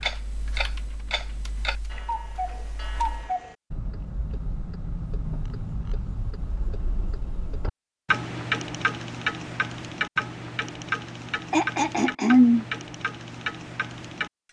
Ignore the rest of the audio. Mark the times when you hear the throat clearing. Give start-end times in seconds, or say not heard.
11.5-12.7.